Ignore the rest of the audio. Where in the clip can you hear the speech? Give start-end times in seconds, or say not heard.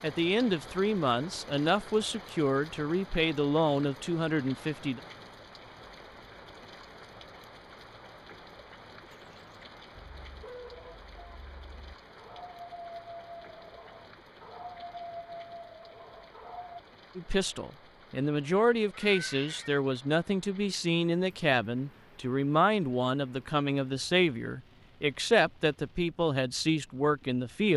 0.0-5.0, 17.1-27.7.